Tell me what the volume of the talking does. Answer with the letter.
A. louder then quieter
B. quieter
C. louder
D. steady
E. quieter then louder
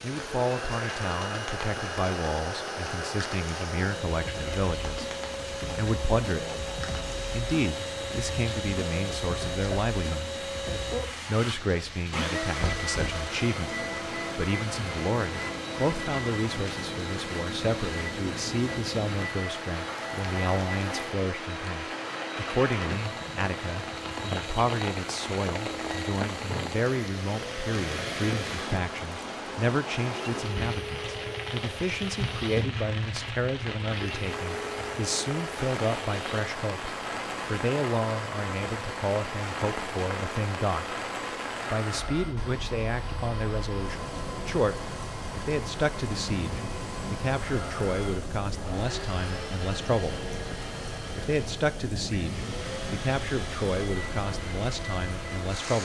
D.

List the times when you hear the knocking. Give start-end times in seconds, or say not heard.
12.6-13.3.